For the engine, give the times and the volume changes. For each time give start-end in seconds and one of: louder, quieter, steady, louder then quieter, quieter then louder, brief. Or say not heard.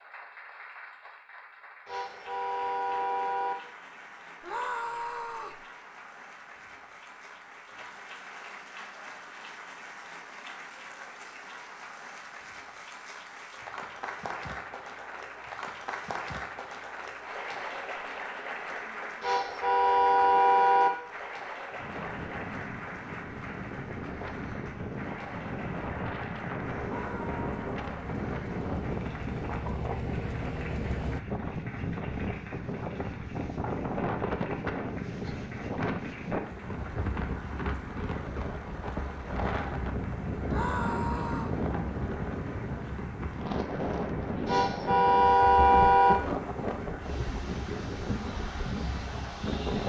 26.6-31.2 louder.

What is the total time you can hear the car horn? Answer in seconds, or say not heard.
5 s.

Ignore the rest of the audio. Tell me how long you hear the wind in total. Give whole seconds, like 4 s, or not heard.
28 s.